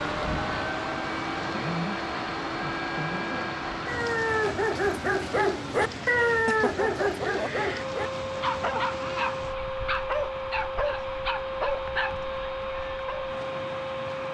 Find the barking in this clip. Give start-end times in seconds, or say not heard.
3.9-13.2.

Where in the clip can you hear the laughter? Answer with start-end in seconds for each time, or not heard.
6.5-7.7.